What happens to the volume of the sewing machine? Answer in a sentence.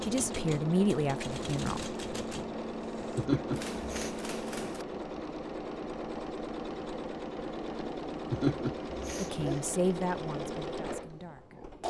The volume of the sewing machine stays about the same.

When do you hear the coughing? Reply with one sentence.
You can hear the coughing from 3.1 to 4.1 s and from 8.3 to 9.6 s.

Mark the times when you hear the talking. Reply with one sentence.
You can hear the talking from 0.0 to 1.9 s and from 9.2 to 11.6 s.